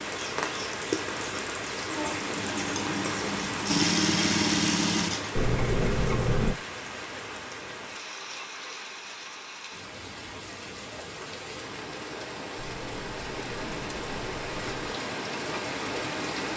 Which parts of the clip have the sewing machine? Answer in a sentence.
The sewing machine can be heard from 2.0 to 5.5 s.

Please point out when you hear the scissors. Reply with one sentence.
The scissors can be heard from 5.3 to 6.5 s and from 12.6 to 14.9 s.